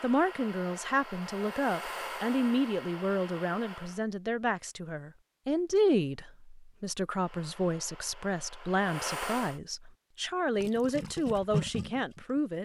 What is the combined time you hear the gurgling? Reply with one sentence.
You can hear the gurgling for 2 seconds altogether.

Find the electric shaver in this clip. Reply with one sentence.
The electric shaver can't be heard in this clip.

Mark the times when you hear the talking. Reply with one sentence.
You can hear the talking from 0.0 to 12.6 s.